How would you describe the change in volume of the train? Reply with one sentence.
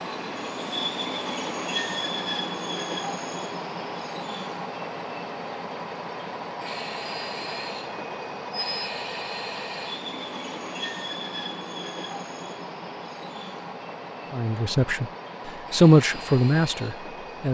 The volume of the train goes down.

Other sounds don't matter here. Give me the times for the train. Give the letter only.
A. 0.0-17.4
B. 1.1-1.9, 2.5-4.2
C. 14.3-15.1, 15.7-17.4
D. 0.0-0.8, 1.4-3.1
A.